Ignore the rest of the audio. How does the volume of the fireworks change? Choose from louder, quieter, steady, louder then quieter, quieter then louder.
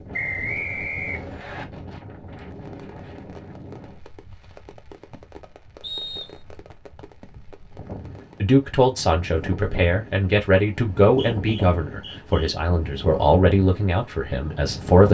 steady.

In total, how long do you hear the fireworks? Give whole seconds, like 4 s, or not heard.
6 s.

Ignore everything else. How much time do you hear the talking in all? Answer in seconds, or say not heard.
7 s.